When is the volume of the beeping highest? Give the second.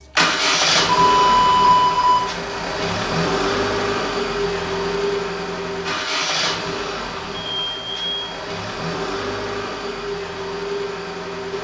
2 s.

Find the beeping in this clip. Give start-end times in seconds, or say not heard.
0.9-2.2, 7.3-8.3.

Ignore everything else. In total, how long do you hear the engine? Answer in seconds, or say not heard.
11 s.